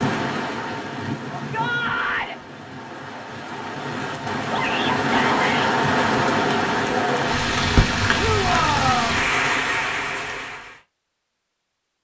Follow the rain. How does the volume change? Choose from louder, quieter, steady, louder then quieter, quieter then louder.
louder.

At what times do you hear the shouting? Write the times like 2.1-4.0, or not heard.
1.3-2.4, 4.5-5.7, 8.2-9.2.